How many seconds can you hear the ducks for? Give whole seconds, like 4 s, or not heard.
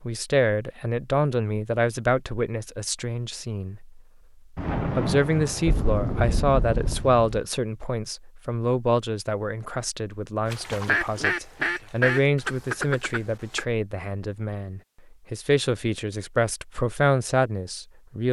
3 s.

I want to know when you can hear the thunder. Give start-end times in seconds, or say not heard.
4.5-7.4.